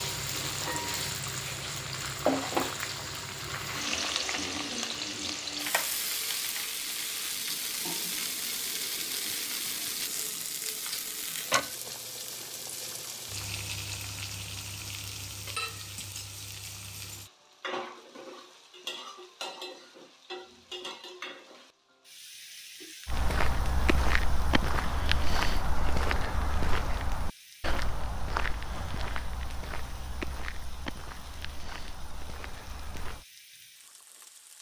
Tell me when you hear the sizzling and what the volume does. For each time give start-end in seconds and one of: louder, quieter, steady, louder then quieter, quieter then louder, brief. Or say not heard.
0.0-34.5 quieter.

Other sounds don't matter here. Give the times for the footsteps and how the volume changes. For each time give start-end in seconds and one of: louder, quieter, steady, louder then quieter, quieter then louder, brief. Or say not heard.
23.1-33.2 quieter.